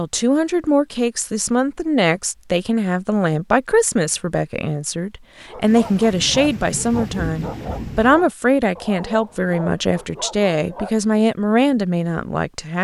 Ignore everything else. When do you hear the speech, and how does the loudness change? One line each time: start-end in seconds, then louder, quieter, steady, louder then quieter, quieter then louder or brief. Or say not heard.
0.0-12.7 steady.